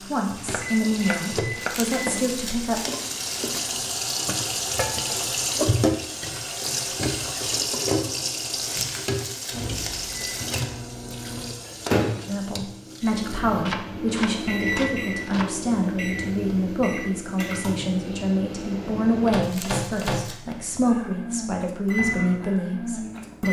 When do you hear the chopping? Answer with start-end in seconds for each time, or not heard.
0.5-2.2, 13.7-15.6.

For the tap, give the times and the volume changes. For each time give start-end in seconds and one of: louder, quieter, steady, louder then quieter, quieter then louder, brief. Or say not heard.
0.0-13.4 louder then quieter.